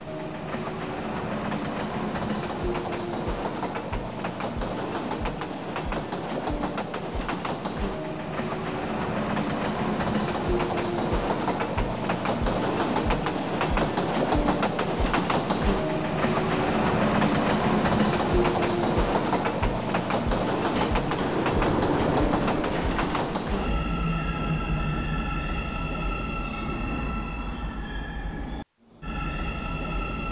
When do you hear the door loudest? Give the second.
22 s.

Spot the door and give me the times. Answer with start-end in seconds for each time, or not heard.
20.7-23.5.